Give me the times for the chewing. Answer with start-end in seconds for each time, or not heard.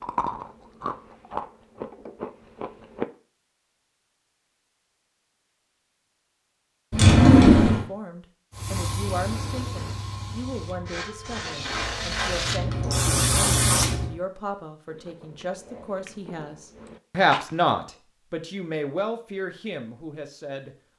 0.0-3.0, 14.8-17.7.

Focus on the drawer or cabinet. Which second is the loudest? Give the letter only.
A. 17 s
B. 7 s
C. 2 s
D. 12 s
B.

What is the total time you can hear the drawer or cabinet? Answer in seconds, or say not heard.
2 s.